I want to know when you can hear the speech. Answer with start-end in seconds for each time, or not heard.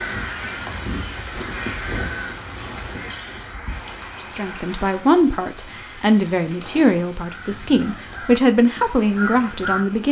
4.2-10.0.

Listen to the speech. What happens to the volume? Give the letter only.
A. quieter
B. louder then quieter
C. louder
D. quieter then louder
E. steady
E.